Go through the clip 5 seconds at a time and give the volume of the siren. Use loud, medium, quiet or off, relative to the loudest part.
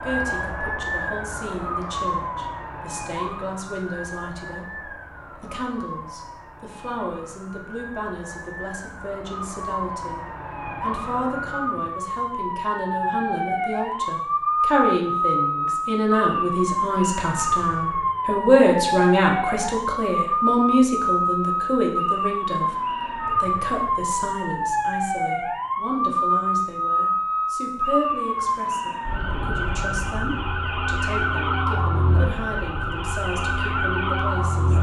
medium, quiet, loud, loud, loud, loud, loud.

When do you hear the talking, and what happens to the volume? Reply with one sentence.
You can hear the talking from 0.0 to 34.7 s, getting louder then quieter.